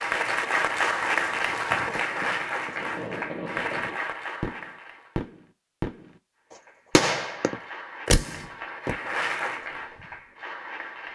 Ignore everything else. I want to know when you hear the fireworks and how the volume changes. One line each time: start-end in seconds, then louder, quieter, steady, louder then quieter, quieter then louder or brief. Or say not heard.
0.1-6.1 louder
7.0-9.2 brief.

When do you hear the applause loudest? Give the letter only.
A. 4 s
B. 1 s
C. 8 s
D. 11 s
B.